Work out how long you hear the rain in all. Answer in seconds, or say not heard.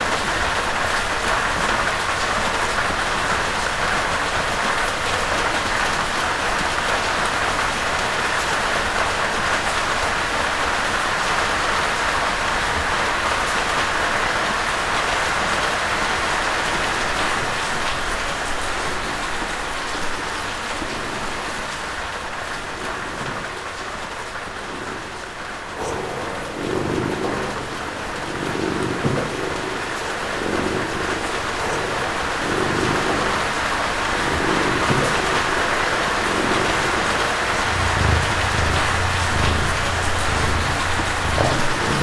42 s.